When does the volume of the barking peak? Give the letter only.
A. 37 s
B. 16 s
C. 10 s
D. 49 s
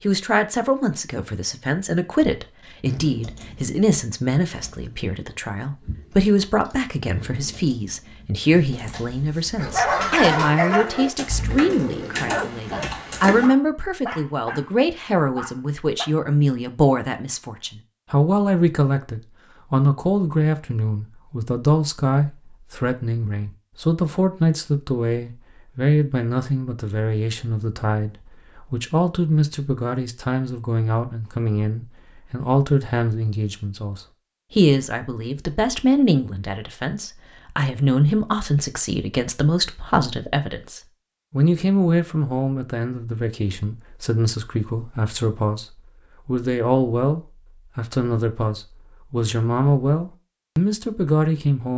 C.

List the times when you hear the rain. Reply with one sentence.
You can't hear the rain here.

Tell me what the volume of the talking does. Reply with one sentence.
The loudness of the talking stays about the same.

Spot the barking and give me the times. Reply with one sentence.
The barking can be heard from 9.6 to 16.1 s.